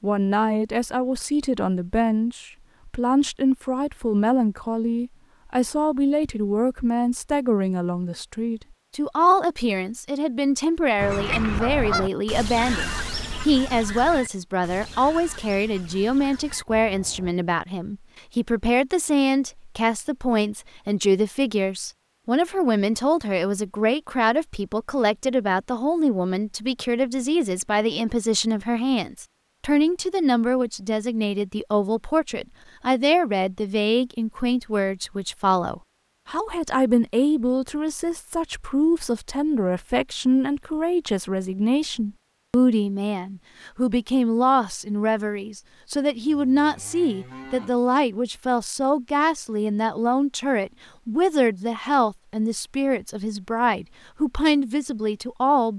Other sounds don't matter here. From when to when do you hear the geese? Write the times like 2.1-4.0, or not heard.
10.9-17.4.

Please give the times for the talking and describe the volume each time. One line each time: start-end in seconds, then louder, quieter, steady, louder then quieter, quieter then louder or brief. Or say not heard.
0.0-55.7 steady.